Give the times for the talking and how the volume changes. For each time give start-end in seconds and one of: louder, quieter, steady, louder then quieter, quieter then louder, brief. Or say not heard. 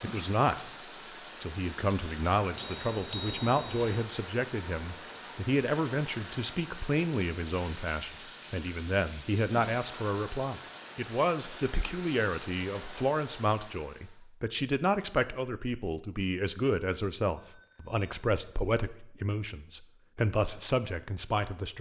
0.0-0.7 brief
1.4-21.7 steady.